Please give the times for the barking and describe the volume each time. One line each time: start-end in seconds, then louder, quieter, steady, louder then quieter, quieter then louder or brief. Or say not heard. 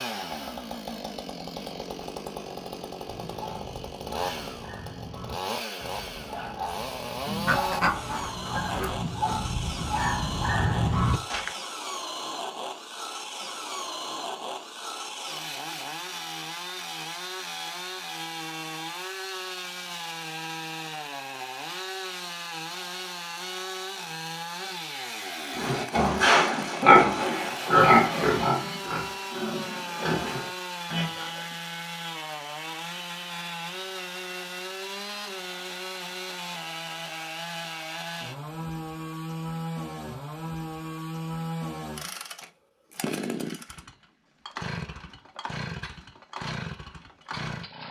3.0-11.5 louder.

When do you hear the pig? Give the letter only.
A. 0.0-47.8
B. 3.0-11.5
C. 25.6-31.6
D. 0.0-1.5
C.